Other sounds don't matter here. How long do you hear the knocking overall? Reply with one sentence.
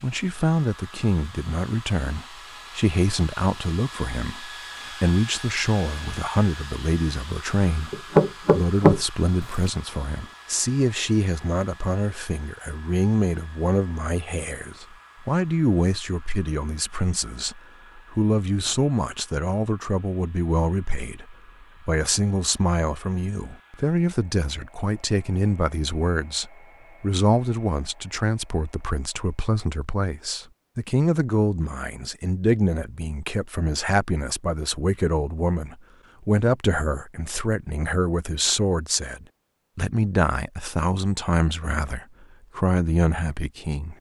You can hear the knocking for 2 seconds altogether.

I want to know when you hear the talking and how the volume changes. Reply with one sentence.
You can hear the talking from 0.0 to 43.9 s, at a steady volume.